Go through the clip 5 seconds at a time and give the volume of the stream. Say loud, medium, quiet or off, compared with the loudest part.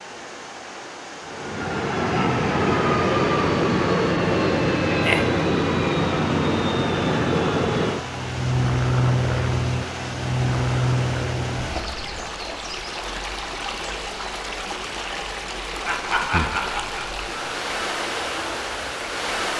medium, medium, loud, loud.